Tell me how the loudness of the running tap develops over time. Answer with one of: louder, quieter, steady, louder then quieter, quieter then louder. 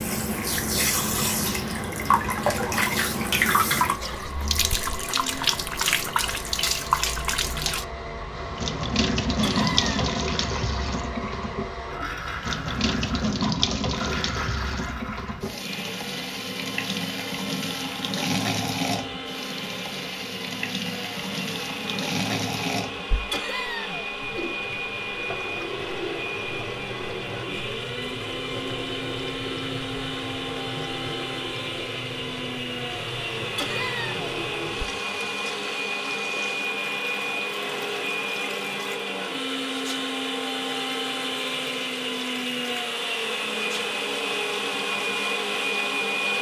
quieter.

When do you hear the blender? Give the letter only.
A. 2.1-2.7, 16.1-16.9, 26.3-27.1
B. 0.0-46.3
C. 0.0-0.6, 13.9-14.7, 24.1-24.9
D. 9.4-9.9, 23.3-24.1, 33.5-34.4
B.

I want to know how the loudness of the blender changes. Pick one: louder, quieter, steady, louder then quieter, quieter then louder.
louder.